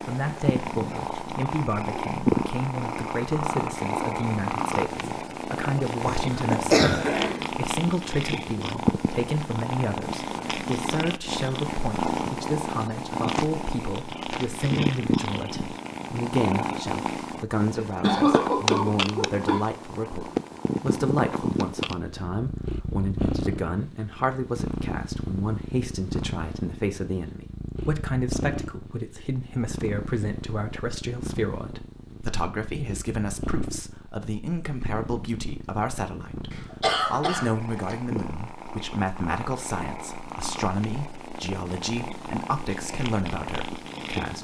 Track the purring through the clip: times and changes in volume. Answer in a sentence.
You can hear the purring from 0.0 to 44.3 s, getting quieter.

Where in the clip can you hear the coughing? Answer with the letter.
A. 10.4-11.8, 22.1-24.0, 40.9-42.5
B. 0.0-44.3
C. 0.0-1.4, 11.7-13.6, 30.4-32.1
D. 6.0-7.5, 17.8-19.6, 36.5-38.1
D.